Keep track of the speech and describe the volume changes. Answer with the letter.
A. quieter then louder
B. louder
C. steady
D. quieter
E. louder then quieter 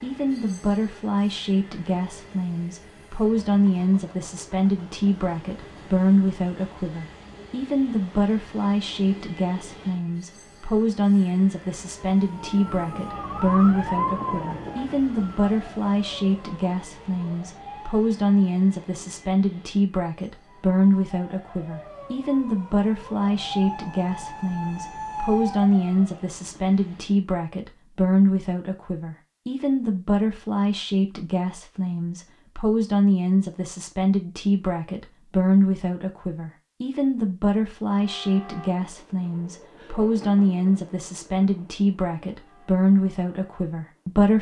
C.